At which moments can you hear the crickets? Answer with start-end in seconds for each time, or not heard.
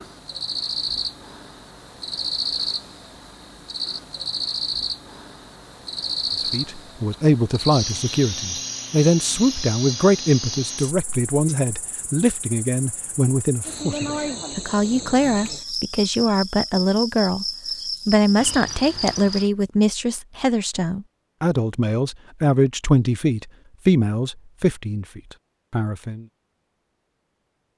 0.0-19.5.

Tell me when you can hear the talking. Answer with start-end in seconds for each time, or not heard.
6.5-17.4, 18.1-26.2.